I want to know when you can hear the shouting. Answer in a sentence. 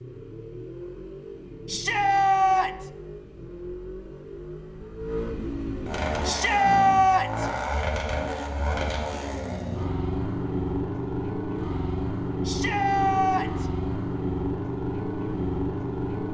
You can hear the shouting from 1.6 to 2.9 s, from 6.2 to 7.5 s and from 12.4 to 13.7 s.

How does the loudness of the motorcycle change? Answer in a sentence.
The volume of the motorcycle goes up.